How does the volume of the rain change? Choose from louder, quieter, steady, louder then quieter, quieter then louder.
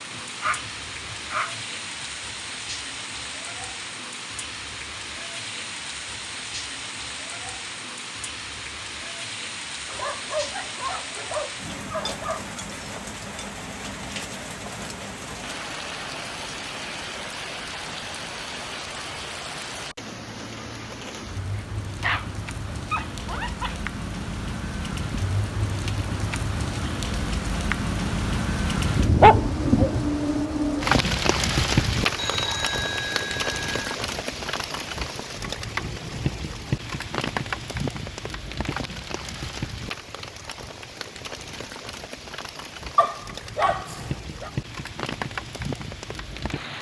louder then quieter.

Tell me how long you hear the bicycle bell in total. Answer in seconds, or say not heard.
2 s.